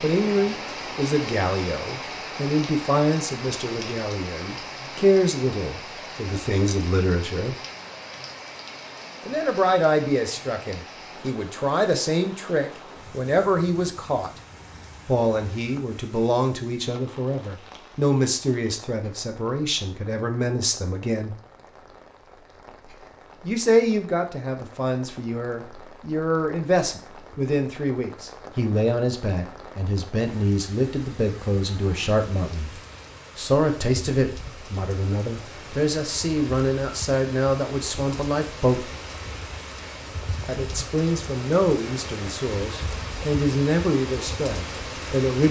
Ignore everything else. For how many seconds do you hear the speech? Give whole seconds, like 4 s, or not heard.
39 s.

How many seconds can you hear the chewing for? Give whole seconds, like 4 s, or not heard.
not heard.